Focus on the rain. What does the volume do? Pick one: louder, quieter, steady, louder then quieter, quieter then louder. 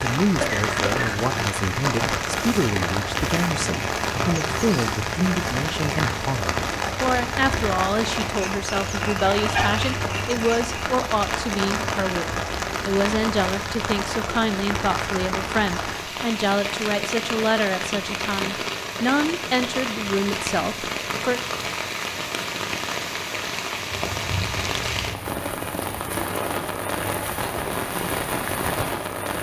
steady.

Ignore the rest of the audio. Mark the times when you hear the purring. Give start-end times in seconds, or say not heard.
not heard.